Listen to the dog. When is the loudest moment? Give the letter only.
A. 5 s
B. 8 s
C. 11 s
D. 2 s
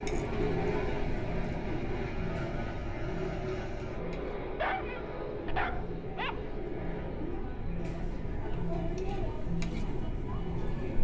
A.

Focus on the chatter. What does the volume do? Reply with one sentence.
The loudness of the chatter goes down, then up.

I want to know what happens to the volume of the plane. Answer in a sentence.
The volume of the plane goes down.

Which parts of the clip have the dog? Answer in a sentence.
The dog can be heard from 4.5 to 6.5 s.